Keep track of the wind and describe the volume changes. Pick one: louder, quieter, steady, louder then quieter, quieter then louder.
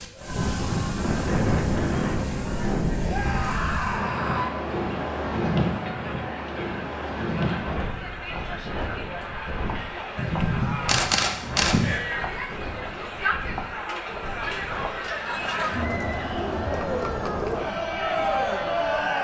quieter.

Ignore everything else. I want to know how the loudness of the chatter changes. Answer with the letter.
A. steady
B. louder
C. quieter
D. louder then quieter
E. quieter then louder
B.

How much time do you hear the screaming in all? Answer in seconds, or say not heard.
2 s.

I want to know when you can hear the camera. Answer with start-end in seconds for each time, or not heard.
10.2-12.0.